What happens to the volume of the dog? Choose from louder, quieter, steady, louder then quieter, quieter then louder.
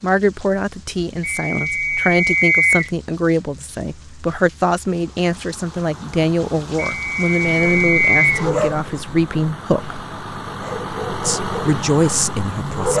quieter then louder.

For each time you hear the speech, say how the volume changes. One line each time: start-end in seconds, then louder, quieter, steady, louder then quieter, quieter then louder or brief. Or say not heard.
0.0-10.0 steady
11.2-12.9 brief.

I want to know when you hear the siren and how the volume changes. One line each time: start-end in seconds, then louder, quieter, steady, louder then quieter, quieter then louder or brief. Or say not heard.
not heard.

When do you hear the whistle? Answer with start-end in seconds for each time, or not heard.
1.2-2.9, 6.8-8.4.